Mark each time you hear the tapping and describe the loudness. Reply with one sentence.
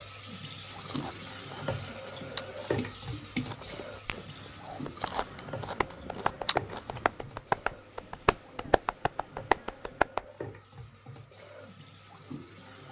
The tapping can be heard from 2.8 to 10.2 s, getting quieter then louder.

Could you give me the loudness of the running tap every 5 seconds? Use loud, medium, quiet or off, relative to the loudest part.
loud, medium, medium.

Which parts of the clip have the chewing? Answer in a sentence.
You can hear the chewing from 0.6 to 7.2 s.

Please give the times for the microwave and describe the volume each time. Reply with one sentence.
The microwave can't be heard in this clip.